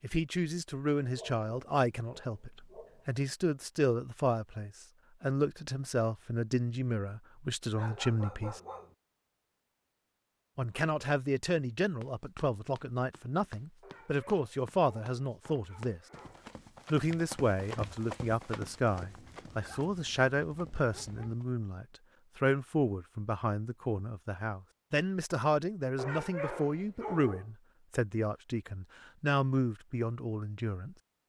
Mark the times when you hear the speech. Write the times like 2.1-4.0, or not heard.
0.0-8.6, 10.6-16.0, 16.9-30.9.